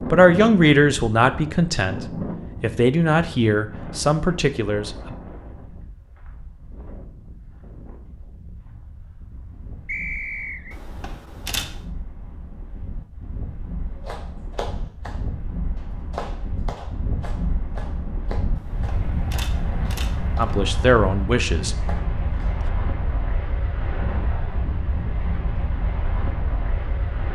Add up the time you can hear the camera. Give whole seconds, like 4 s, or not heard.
3 s.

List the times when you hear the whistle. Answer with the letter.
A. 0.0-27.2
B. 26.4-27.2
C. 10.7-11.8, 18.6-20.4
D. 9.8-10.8
D.